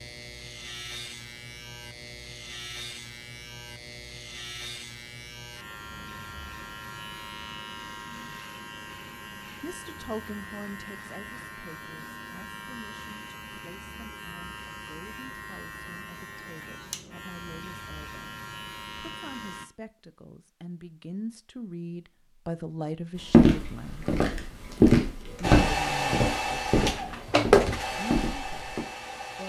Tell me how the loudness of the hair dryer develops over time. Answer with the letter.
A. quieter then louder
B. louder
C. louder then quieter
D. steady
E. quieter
C.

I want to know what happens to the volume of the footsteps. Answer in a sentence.
The volume of the footsteps goes up, then down.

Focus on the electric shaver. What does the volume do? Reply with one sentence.
The loudness of the electric shaver stays about the same.